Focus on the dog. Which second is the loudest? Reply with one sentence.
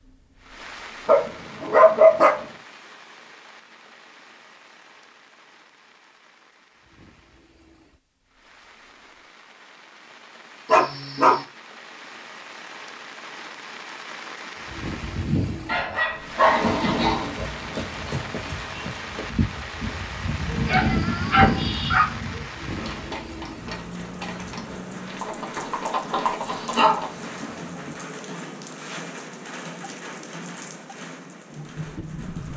The volume of the dog peaks at 2 seconds.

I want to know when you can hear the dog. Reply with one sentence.
You can hear the dog from 1.1 to 2.5 s, from 10.7 to 11.4 s, from 15.7 to 17.3 s, from 20.6 to 22.1 s and from 26.4 to 27.0 s.